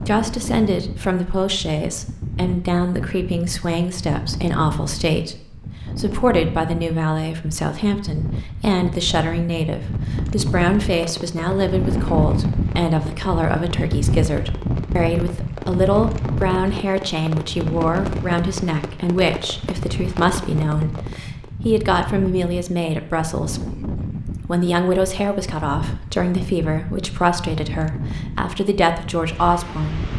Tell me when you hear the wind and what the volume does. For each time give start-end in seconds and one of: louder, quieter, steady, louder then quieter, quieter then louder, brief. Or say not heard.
0.0-30.1 louder then quieter.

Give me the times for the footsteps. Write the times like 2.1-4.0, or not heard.
not heard.